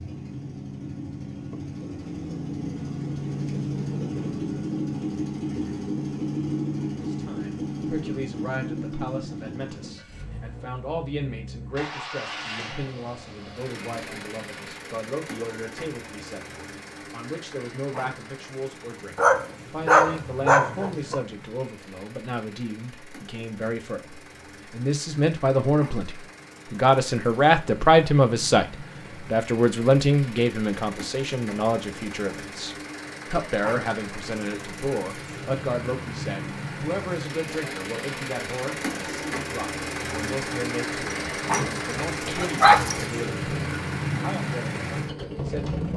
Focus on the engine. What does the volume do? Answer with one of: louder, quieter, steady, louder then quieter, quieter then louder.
quieter then louder.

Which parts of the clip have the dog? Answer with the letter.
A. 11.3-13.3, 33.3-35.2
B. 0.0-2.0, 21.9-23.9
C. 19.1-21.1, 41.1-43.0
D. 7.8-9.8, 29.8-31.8
C.